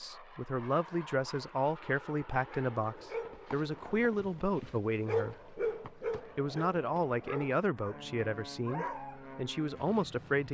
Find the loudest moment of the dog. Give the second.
5 s.